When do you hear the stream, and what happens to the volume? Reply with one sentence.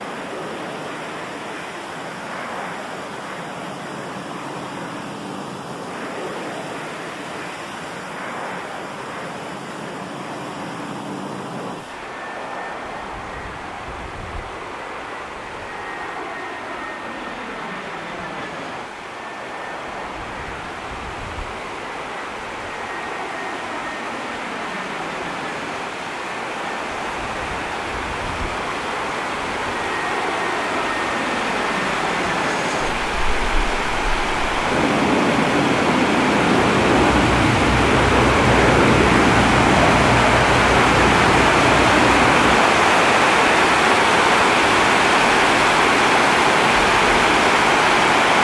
You can hear the stream from 0.0 to 48.3 s, getting louder.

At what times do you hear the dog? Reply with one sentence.
The dog can't be heard in this clip.